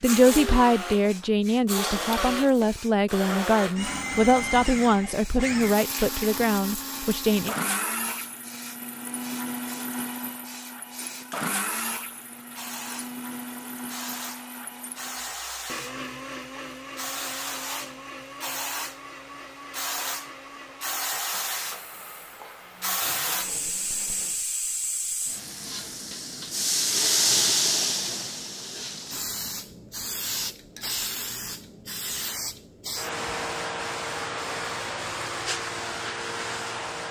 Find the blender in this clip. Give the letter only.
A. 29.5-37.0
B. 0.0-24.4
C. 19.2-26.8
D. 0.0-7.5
B.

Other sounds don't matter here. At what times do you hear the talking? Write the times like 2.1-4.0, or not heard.
0.0-7.5.